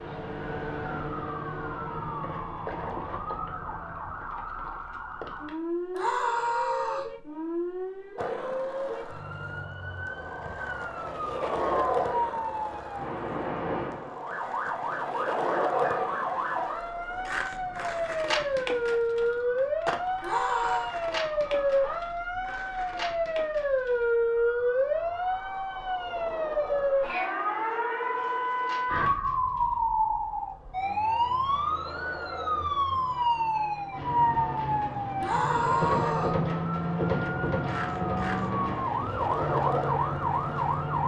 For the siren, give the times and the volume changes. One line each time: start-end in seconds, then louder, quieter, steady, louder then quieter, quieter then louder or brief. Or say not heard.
0.0-41.0 louder.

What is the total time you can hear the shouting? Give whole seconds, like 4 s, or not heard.
3 s.